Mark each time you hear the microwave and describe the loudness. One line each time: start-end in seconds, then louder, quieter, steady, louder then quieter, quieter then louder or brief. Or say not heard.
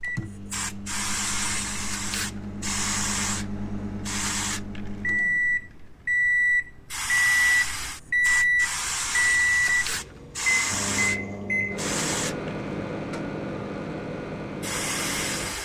0.0-15.6 louder then quieter.